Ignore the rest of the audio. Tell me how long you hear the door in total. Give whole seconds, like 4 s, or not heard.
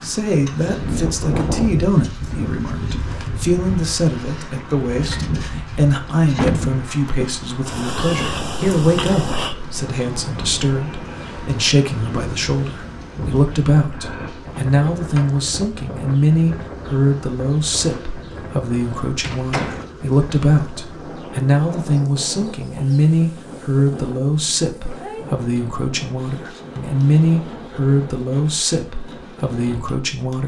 2 s.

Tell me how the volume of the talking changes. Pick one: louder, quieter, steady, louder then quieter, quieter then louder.
steady.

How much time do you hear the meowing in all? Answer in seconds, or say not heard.
2 s.